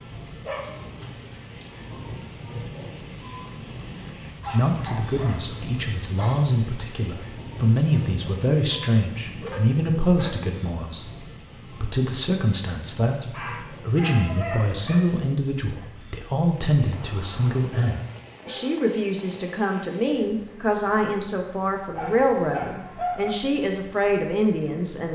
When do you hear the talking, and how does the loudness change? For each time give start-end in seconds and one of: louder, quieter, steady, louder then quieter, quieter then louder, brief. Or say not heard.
4.5-25.1 steady.